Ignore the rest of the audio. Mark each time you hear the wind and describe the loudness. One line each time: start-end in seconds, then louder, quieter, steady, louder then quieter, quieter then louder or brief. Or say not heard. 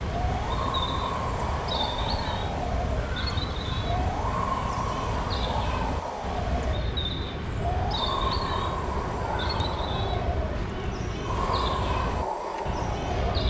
0.0-13.4 steady.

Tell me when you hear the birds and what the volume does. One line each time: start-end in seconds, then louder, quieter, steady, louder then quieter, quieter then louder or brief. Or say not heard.
0.0-13.4 steady.